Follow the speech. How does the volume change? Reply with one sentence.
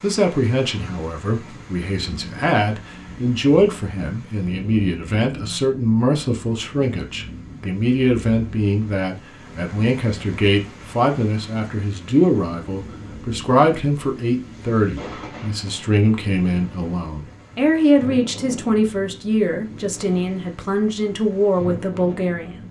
The volume of the speech stays about the same.